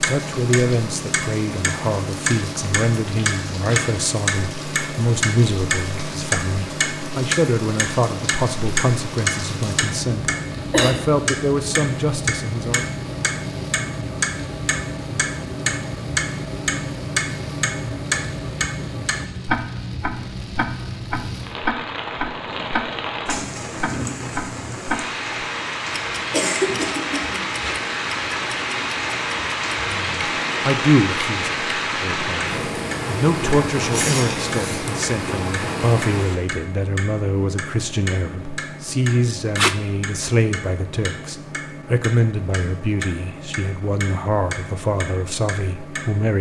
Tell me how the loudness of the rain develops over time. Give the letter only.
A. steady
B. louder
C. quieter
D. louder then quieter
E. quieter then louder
B.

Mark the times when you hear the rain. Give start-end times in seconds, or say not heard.
0.0-36.4.